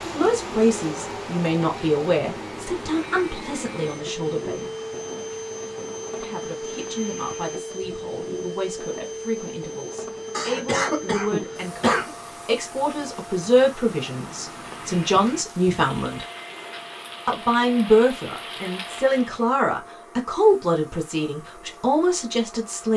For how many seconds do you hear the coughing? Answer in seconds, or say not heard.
2 s.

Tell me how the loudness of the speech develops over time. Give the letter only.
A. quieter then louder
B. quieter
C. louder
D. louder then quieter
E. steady
A.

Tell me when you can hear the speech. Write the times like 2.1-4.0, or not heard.
0.1-4.7, 6.2-16.2, 17.2-22.9.